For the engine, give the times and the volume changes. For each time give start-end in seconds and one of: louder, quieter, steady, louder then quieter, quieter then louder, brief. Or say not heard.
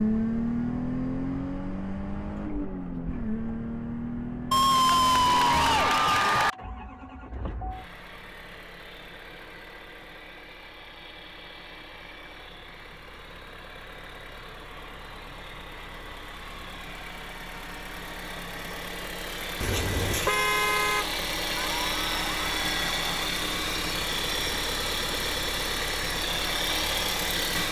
0.0-27.6 quieter then louder.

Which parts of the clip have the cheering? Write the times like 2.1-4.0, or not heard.
4.5-6.5, 21.6-23.3.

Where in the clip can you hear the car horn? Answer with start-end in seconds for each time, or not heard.
19.6-21.1.